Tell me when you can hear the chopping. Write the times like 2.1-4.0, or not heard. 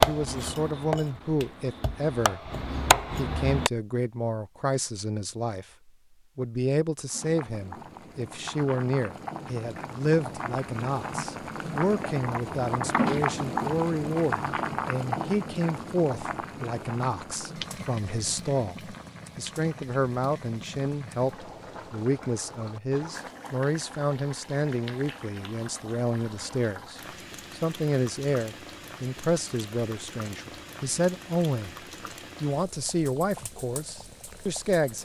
0.0-3.7.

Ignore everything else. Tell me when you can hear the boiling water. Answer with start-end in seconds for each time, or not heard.
7.0-34.9.